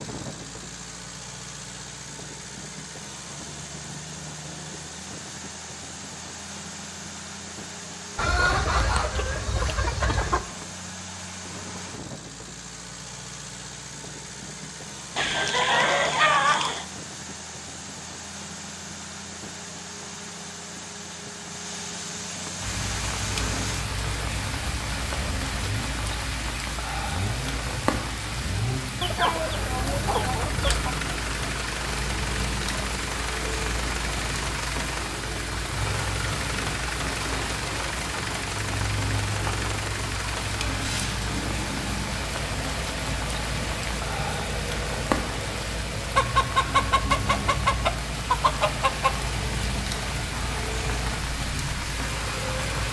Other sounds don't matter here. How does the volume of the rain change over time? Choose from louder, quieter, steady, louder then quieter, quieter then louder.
steady.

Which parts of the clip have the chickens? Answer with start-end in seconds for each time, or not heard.
8.2-10.4, 15.2-16.9, 29.0-30.9, 46.1-49.1.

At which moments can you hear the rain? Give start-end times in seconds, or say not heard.
22.6-52.8.